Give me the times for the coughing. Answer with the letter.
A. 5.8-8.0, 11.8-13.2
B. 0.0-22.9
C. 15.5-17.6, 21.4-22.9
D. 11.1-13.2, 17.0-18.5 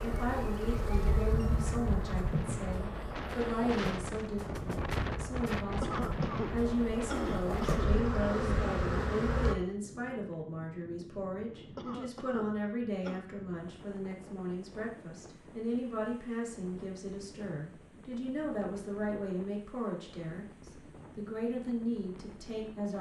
A.